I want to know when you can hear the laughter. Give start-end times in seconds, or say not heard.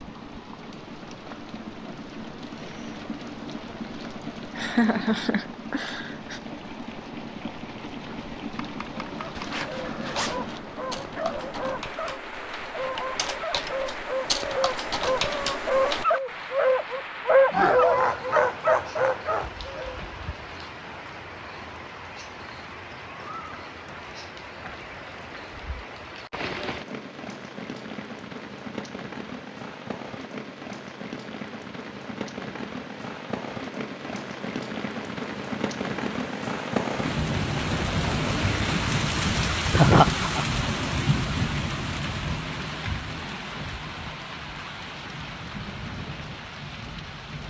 4.5-6.4, 17.5-19.4, 39.7-40.5.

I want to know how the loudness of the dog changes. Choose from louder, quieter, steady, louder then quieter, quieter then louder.
louder.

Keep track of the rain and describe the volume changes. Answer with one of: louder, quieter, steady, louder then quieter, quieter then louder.
louder.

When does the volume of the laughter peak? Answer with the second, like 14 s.
40 s.